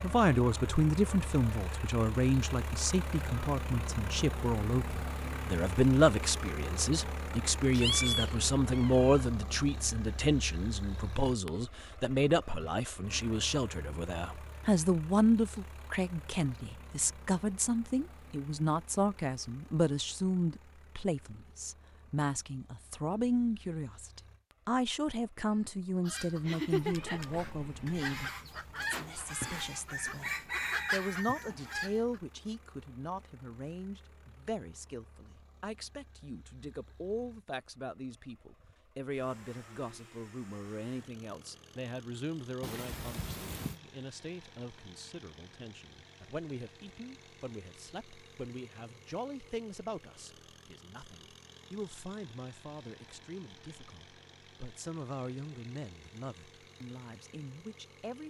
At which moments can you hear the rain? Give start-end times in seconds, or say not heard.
not heard.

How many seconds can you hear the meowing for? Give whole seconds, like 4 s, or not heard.
4 s.